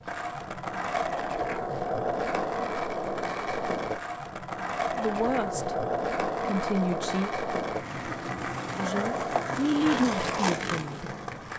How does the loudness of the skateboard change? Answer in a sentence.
The loudness of the skateboard stays about the same.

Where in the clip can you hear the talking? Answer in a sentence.
The talking can be heard from 5.0 to 5.8 s, from 6.4 to 7.3 s and from 8.8 to 11.1 s.